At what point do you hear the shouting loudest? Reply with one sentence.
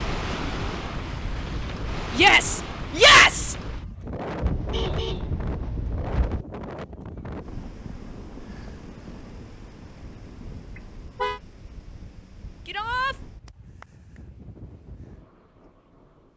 The loudest moment of the shouting is at 3 seconds.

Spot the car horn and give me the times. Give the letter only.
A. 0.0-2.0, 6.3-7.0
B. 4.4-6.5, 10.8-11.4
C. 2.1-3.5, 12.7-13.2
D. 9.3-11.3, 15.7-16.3
B.